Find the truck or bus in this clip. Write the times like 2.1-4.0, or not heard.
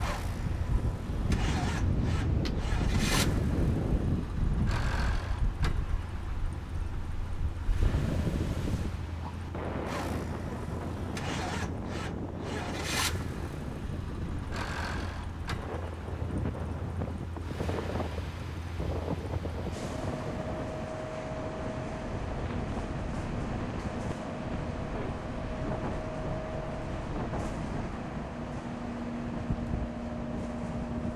0.0-31.1.